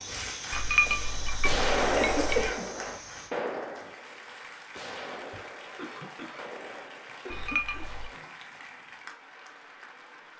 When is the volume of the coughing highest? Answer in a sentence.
The volume of the coughing peaks at 2 seconds.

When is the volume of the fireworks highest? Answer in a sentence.
The volume of the fireworks peaks at 2 seconds.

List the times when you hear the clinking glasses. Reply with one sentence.
You can hear the clinking glasses from 0.5 to 2.5 s and from 7.3 to 8.1 s.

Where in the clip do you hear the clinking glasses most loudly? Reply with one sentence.
The loudest moment of the clinking glasses is at 1 second.